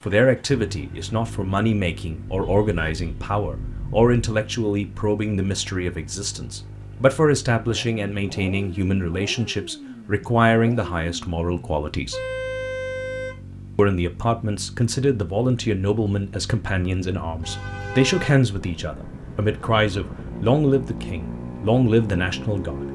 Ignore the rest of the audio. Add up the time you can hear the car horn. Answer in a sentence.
The car horn can be heard for 4 seconds in total.